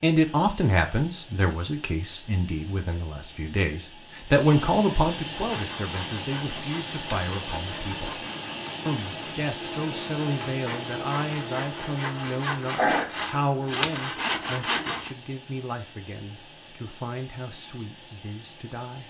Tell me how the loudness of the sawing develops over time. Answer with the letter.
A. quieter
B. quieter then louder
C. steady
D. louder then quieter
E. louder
E.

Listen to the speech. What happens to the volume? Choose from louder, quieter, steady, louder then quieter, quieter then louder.
quieter.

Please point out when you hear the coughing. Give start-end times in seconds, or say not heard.
11.9-13.1.